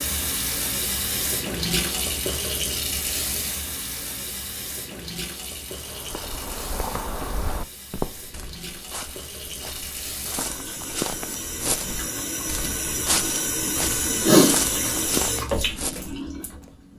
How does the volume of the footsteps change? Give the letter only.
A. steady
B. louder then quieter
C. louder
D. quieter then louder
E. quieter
D.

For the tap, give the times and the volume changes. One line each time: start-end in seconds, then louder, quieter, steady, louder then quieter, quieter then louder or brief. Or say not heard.
0.0-16.8 quieter then louder.